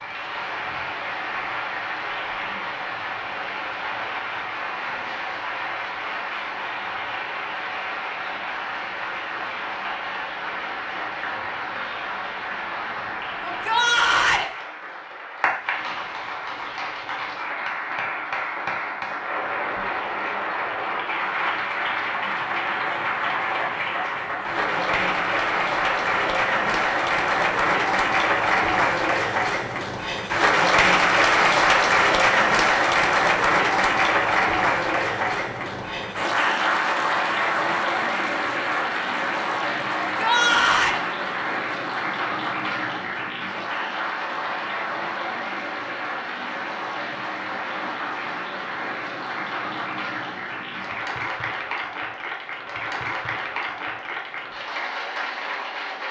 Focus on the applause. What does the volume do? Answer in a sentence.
The loudness of the applause goes up, then down.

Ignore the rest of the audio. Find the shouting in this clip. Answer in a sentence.
You can hear the shouting from 13.4 to 14.5 s and from 40.0 to 41.0 s.